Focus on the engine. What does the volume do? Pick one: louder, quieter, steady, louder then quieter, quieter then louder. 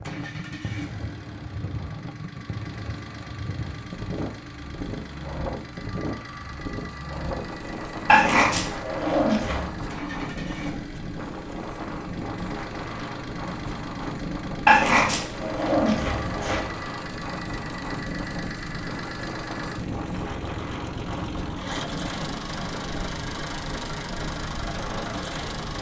louder.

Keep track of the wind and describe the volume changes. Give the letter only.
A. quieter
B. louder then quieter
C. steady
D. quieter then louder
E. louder
C.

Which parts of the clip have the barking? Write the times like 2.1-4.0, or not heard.
8.1-9.7, 14.7-16.6.